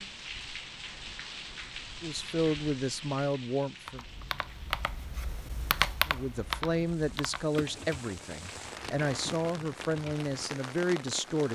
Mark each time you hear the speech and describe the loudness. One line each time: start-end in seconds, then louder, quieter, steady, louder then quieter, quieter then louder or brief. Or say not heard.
2.0-4.0 brief
6.0-11.5 steady.